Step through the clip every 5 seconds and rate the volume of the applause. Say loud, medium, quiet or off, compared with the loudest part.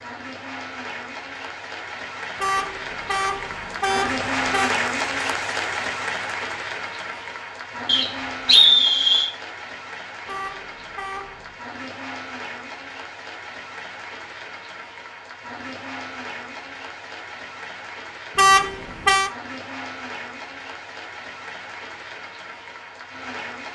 loud, loud, medium, medium, medium.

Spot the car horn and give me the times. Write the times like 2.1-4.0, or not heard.
2.4-4.7, 10.2-11.5, 18.4-19.3.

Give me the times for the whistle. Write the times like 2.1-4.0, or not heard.
7.8-9.3.